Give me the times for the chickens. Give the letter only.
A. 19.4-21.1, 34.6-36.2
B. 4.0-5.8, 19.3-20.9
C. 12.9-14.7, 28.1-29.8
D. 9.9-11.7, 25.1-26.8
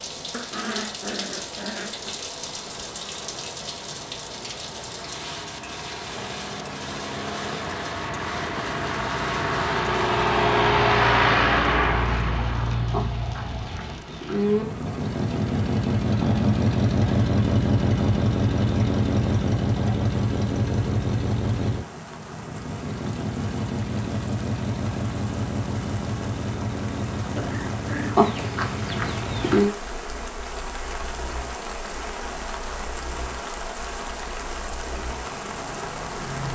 C.